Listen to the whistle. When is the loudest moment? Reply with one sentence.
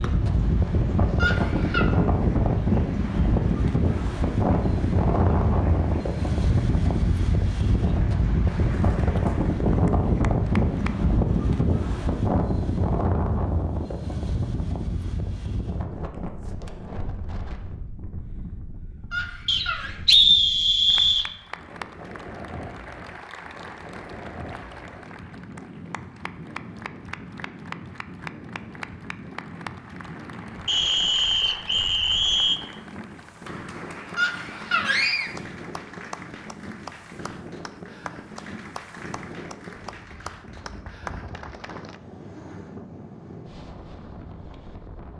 The volume of the whistle peaks at 20 seconds.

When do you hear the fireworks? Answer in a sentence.
The fireworks can't be heard in this clip.